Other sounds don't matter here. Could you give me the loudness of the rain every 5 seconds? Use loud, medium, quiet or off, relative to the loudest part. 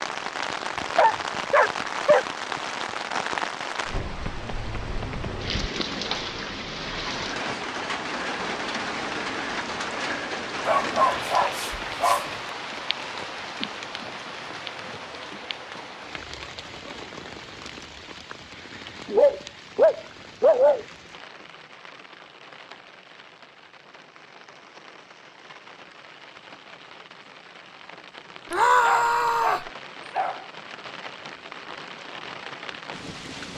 loud, loud, loud, medium, quiet, quiet, medium.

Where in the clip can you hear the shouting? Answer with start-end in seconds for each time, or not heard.
28.5-29.7.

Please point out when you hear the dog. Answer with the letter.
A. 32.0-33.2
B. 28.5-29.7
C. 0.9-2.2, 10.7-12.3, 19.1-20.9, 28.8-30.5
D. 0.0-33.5
C.